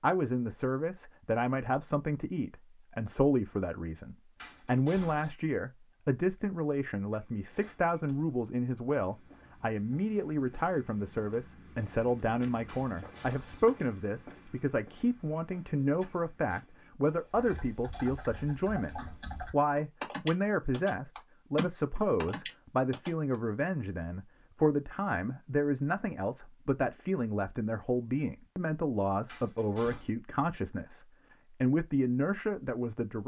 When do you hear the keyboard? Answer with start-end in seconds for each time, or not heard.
17.2-23.1.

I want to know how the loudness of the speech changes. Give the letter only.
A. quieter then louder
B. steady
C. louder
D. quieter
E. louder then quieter
B.